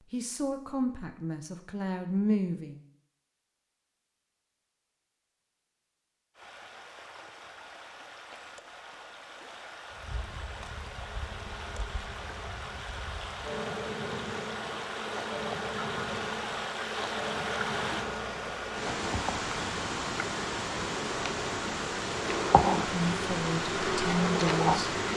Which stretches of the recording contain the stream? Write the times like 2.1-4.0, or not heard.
6.3-25.1.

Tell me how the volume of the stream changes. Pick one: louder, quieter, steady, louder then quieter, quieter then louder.
louder.